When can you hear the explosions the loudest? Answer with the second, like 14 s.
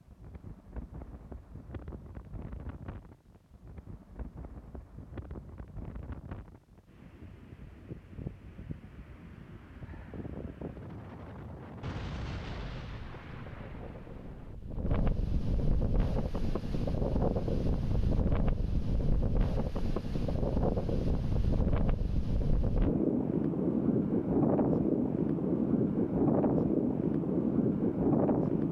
12 s.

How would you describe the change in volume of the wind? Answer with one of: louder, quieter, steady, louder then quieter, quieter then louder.
louder.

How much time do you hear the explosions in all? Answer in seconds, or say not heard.
3 s.